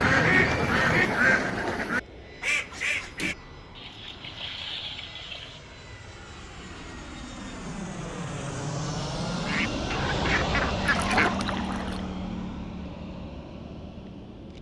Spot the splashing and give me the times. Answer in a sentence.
The splashing can be heard from 3.8 to 5.6 s and from 10.9 to 12.0 s.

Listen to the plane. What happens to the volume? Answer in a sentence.
The loudness of the plane goes up, then down.